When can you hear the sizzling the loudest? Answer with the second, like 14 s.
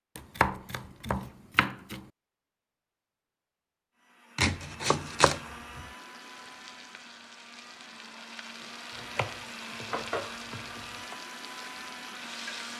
10 s.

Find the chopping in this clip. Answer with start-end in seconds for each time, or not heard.
0.1-2.0, 4.3-5.8, 8.9-11.2.